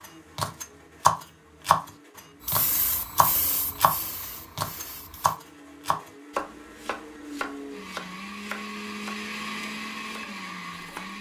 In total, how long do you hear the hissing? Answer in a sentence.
You can hear the hissing for 3 seconds altogether.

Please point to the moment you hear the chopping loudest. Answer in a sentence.
The volume of the chopping peaks at 1 second.